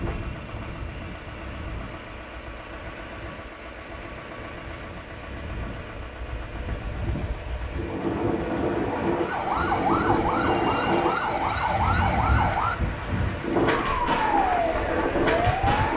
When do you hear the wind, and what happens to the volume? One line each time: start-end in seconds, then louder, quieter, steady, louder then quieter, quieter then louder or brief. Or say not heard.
0.0-15.9 louder.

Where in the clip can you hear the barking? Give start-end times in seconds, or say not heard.
not heard.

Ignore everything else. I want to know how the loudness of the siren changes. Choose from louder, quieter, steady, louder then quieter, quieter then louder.
steady.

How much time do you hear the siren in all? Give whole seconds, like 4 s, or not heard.
7 s.